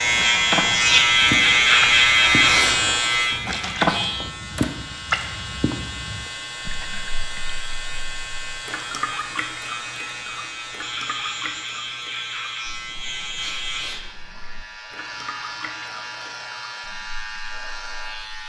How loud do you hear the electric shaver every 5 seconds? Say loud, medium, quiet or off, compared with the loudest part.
loud, quiet, quiet, quiet.